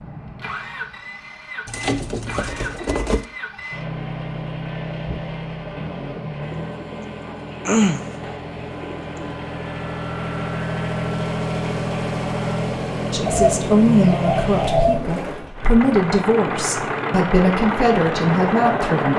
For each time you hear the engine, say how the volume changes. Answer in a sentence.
The engine can be heard from 0.0 to 19.1 s, getting louder.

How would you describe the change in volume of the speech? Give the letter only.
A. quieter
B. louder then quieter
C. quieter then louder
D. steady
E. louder
C.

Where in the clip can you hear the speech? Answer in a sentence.
You can hear the speech from 13.1 to 19.1 s.